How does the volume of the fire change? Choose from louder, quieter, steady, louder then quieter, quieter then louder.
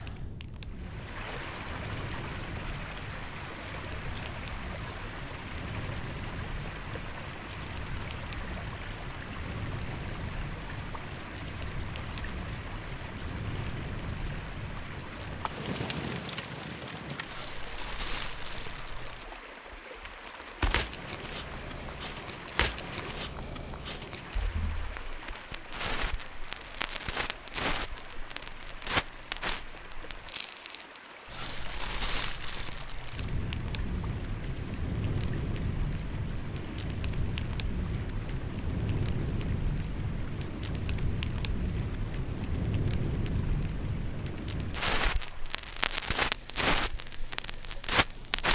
louder.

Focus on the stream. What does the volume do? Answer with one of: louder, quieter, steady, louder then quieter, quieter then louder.
quieter.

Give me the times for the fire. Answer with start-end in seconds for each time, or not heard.
0.0-48.5.